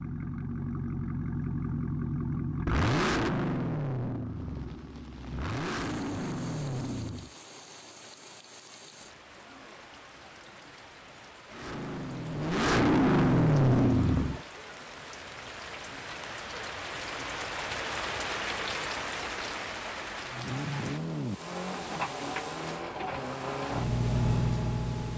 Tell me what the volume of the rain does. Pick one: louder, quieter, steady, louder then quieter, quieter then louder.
louder then quieter.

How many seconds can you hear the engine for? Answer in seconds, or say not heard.
15 s.